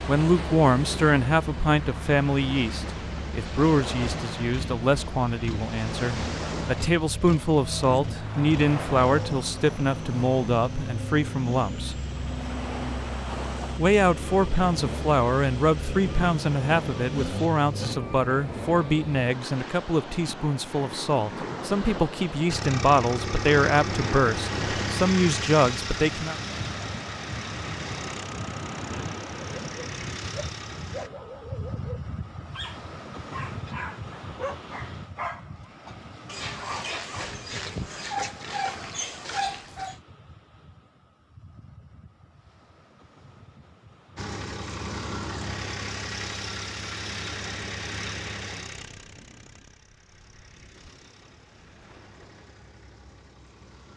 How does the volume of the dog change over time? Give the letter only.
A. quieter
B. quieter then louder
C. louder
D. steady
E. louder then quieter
C.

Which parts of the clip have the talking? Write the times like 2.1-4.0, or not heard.
0.1-12.0, 13.8-26.4.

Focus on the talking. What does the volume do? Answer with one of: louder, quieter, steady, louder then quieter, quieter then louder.
steady.